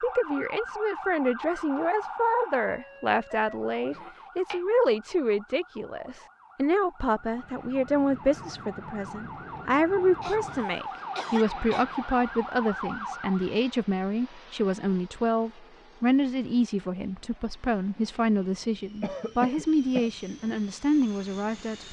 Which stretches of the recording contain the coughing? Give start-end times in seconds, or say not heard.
3.9-4.6, 10.2-11.8, 19.0-20.1.